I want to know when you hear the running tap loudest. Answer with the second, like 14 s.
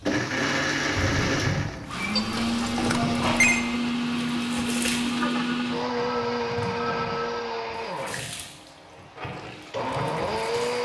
3 s.